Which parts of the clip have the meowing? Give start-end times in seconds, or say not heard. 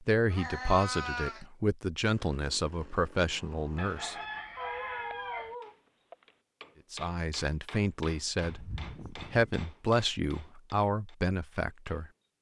0.2-1.4, 4.5-6.2, 8.4-9.6.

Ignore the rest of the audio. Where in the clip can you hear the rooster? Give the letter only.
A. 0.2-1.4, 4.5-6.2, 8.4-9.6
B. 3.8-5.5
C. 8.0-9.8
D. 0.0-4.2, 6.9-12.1
B.